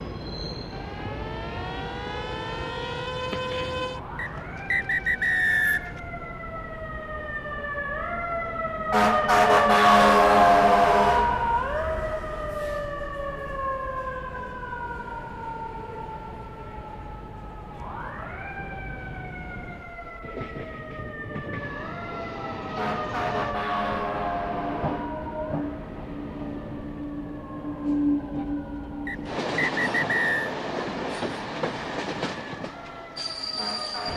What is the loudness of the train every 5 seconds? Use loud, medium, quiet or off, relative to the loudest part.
medium, quiet, quiet, quiet, medium, loud, loud.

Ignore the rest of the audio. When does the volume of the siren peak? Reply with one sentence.
The volume of the siren peaks at 10 seconds.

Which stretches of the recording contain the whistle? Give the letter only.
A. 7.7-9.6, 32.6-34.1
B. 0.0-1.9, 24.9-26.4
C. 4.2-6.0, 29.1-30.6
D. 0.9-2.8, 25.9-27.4
C.